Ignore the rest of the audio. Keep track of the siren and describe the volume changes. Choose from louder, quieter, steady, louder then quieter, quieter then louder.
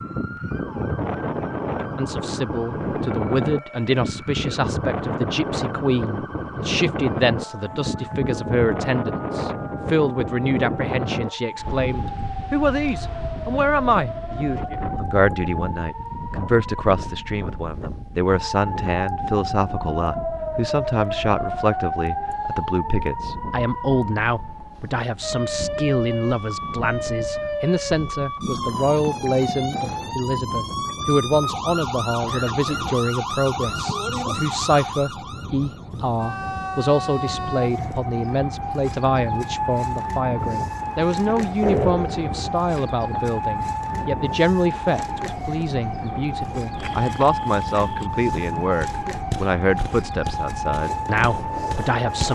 louder.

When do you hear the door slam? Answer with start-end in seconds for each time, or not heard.
41.6-42.9.